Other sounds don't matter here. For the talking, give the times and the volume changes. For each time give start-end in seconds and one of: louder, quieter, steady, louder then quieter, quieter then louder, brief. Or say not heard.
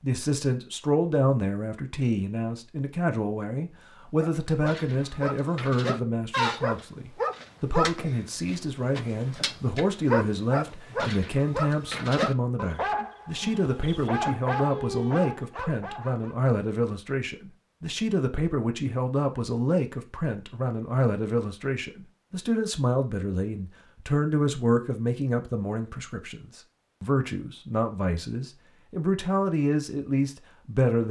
0.0-31.0 steady.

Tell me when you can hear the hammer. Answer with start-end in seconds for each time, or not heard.
not heard.